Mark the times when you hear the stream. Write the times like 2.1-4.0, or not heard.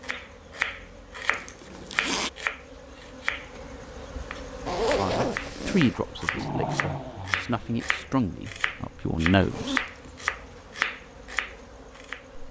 not heard.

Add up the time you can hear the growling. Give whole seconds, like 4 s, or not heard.
2 s.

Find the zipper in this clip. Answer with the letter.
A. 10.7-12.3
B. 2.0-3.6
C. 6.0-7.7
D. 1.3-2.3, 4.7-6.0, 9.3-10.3
D.